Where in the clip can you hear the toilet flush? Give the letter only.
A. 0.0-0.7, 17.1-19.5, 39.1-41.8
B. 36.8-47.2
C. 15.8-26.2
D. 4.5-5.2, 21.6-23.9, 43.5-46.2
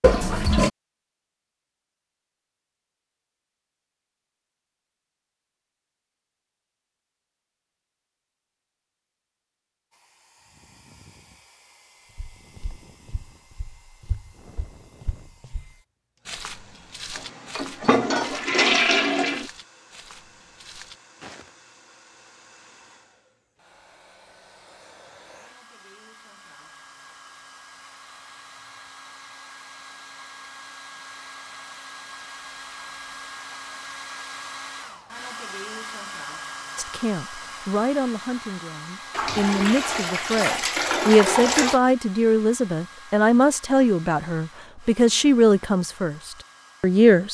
A.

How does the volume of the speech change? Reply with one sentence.
The volume of the speech goes up.